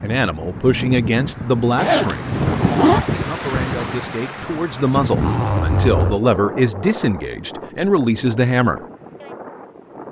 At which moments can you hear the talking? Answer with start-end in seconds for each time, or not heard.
0.0-8.8.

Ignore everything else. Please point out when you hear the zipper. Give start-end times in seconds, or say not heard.
1.8-3.0, 5.2-6.2.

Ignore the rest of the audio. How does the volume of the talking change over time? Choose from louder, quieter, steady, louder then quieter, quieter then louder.
quieter then louder.